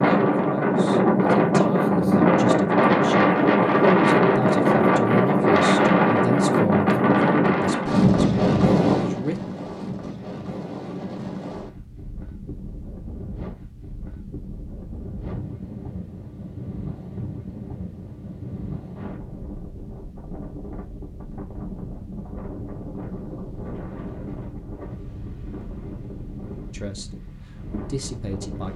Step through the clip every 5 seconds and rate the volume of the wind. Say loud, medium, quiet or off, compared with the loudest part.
loud, loud, quiet, quiet, quiet, quiet.